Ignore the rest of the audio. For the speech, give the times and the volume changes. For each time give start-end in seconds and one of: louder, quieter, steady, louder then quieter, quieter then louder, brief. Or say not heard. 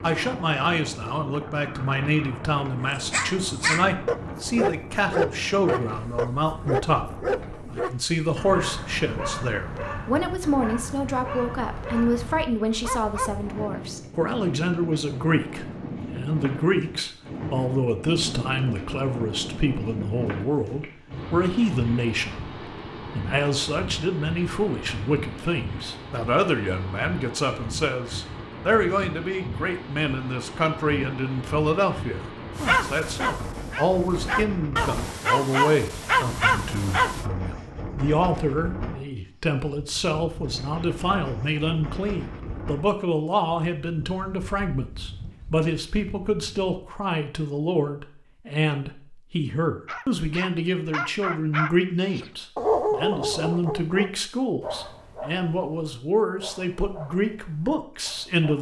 0.0-22.4 steady
23.1-58.5 steady.